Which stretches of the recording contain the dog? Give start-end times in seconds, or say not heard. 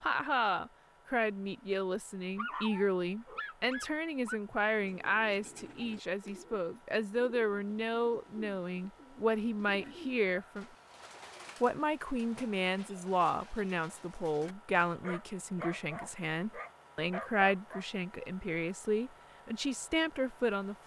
2.4-4.3, 9.8-10.6, 15.0-17.9.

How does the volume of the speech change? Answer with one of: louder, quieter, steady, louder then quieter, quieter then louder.
steady.